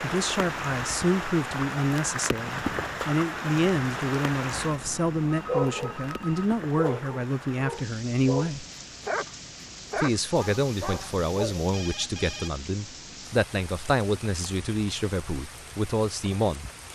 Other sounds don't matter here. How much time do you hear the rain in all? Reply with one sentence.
The rain can be heard for 17 seconds in total.